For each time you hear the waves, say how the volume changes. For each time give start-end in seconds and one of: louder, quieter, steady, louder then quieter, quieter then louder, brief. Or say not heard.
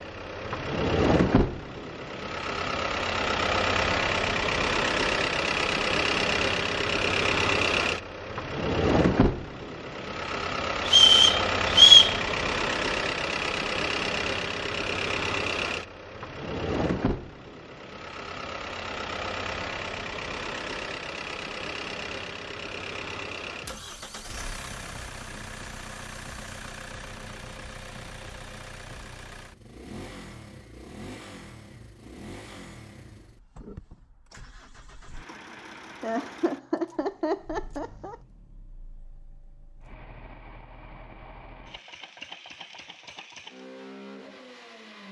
not heard.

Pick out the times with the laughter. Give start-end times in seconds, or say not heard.
36.0-38.1.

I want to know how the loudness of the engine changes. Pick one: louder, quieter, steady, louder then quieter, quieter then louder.
quieter.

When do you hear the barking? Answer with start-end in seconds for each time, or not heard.
not heard.